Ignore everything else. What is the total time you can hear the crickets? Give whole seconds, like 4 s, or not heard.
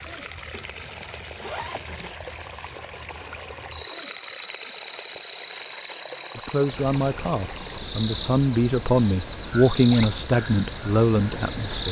12 s.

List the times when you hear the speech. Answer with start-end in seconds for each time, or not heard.
6.3-11.8.